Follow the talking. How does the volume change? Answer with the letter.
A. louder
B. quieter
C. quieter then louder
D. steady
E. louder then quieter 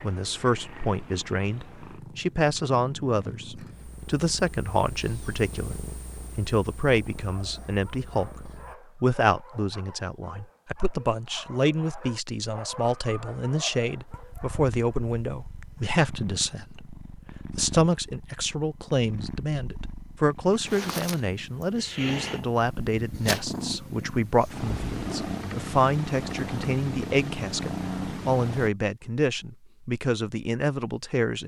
D.